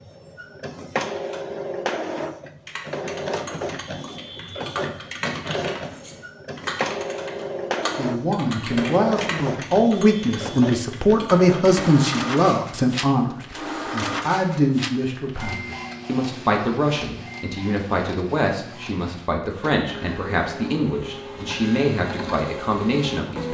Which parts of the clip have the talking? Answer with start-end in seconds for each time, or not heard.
8.0-23.5.